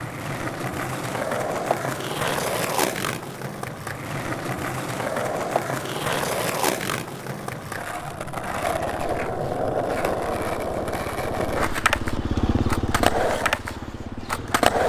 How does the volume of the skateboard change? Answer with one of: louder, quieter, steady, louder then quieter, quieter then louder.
steady.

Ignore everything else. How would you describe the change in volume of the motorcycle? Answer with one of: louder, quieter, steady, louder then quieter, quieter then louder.
louder then quieter.